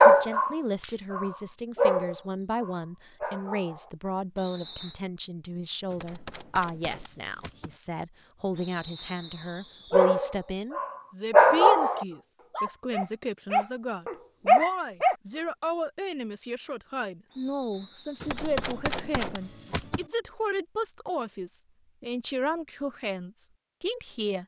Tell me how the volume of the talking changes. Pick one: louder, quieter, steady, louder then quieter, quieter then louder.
steady.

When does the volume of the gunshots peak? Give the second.
19 s.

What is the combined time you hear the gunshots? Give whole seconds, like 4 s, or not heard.
4 s.